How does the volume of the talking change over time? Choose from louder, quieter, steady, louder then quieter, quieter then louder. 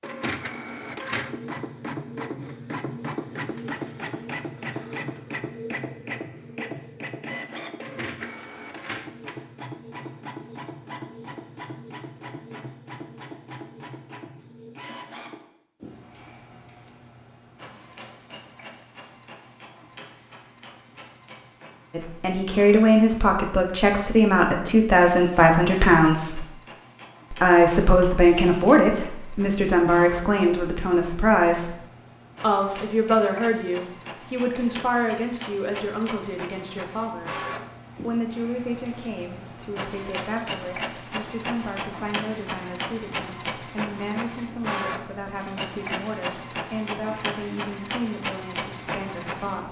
quieter.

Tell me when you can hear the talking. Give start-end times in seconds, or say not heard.
21.9-26.4, 27.3-31.8, 32.4-37.4, 38.0-49.6.